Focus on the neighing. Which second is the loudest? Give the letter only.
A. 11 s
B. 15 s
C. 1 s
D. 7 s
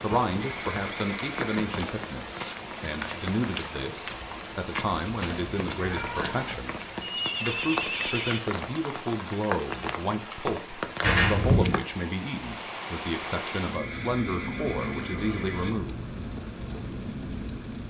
D.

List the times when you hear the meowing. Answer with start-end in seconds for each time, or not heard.
5.1-6.5, 11.0-11.8.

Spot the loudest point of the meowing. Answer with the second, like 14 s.
11 s.